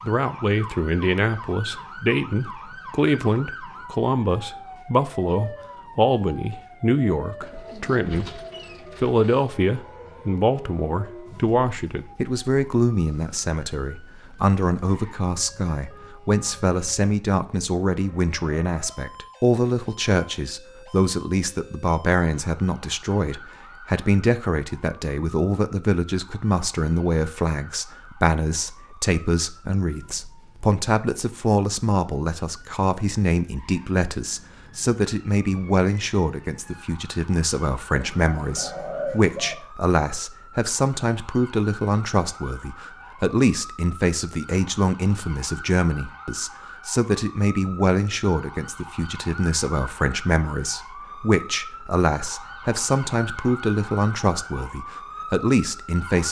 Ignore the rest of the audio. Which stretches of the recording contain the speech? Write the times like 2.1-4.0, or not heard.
0.0-8.4, 9.0-56.2.